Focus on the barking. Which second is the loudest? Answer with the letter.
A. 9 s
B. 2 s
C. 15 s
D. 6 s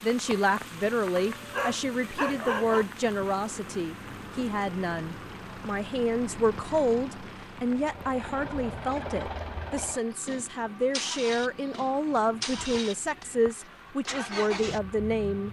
B.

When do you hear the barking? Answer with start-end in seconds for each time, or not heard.
1.1-2.9.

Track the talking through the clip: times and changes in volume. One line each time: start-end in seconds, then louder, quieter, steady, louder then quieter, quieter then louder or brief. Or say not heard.
0.0-15.4 steady.